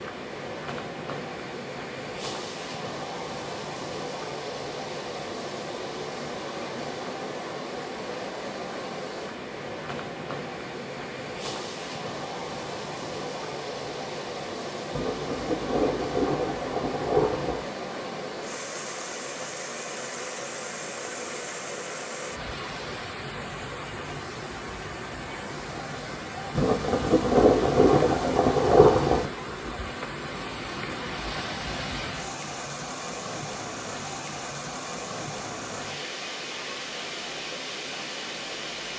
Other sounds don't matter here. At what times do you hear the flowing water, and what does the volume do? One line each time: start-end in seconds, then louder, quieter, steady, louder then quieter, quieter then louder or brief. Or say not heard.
0.0-38.9 steady.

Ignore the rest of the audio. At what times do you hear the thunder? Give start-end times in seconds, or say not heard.
14.9-17.6, 26.6-29.3.